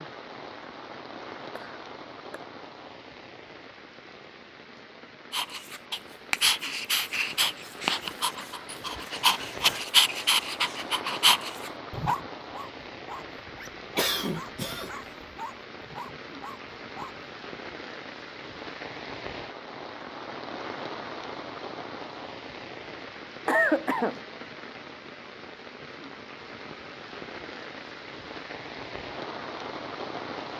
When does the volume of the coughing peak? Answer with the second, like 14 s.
24 s.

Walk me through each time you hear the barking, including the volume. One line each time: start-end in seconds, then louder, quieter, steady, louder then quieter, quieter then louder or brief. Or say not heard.
5.3-17.2 quieter.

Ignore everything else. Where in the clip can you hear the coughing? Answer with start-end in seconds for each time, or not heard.
1.4-2.4, 13.9-14.9, 23.4-24.2.